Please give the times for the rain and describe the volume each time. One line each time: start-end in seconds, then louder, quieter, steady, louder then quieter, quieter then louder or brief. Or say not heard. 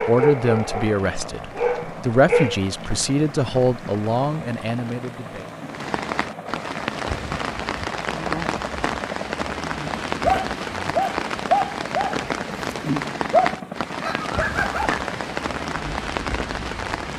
0.0-17.1 louder.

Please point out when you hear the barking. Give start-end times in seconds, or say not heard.
0.0-2.6, 10.2-15.0.